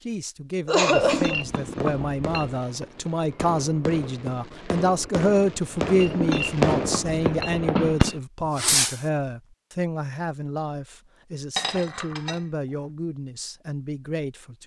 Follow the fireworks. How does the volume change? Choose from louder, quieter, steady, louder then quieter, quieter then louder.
louder.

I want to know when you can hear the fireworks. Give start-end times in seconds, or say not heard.
1.2-9.0.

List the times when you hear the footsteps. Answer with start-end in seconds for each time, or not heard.
not heard.